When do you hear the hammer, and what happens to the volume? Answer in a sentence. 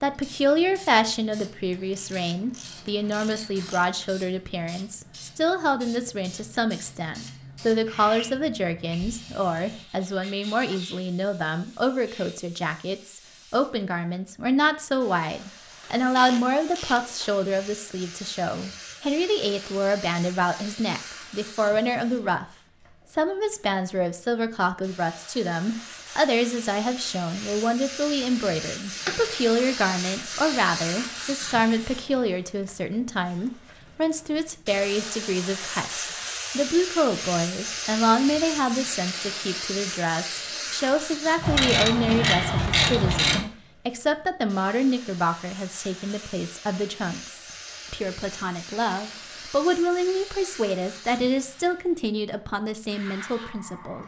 The hammer can't be heard in this clip.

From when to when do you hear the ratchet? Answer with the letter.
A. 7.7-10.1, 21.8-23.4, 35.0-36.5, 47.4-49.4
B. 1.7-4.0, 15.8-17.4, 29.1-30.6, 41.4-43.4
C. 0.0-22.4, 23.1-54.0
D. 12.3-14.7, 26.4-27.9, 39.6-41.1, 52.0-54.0
B.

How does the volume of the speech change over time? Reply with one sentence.
The volume of the speech stays about the same.